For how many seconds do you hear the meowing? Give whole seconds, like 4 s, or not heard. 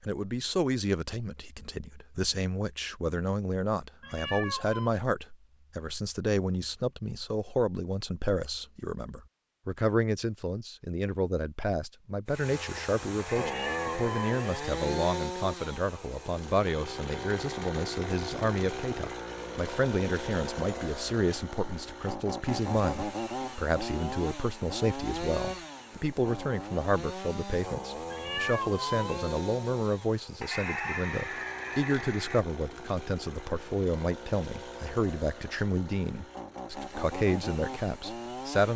3 s.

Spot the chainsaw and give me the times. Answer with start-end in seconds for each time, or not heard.
12.2-38.7.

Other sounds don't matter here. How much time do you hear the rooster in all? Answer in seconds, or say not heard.
4 s.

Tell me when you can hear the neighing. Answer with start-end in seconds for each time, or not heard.
not heard.